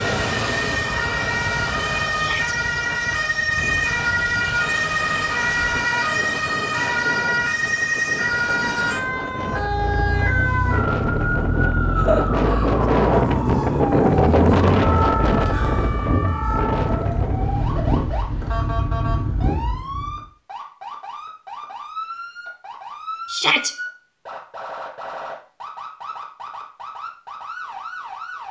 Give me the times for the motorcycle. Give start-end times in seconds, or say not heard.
9.5-20.2.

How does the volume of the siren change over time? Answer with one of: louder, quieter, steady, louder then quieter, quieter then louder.
quieter.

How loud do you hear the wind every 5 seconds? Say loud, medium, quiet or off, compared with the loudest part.
quiet, quiet, loud, medium, off, off.